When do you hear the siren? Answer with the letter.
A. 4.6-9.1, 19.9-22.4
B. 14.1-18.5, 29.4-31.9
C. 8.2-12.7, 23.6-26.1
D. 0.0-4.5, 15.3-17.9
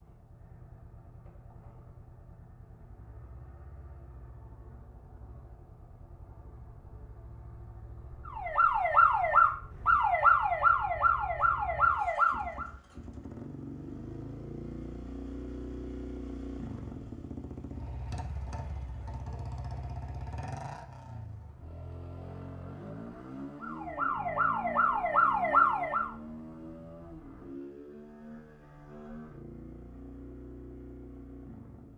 C.